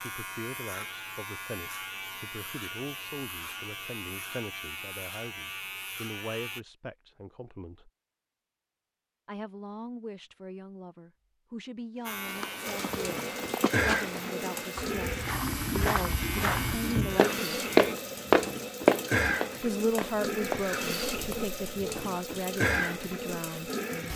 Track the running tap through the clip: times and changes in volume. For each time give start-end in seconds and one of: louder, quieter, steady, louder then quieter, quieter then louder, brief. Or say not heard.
12.7-24.1 steady.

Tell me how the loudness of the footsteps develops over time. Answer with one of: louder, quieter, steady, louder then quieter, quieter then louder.
louder then quieter.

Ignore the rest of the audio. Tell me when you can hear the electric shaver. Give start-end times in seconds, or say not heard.
0.0-6.6, 12.1-17.9.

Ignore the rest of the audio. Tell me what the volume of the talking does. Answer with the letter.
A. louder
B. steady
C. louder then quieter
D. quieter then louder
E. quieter
A.